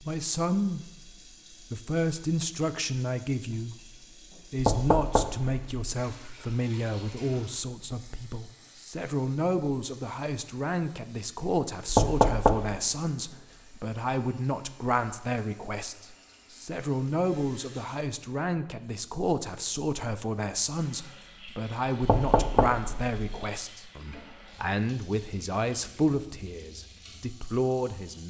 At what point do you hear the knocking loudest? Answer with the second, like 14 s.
12 s.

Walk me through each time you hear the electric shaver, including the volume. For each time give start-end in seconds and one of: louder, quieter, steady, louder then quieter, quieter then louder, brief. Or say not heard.
not heard.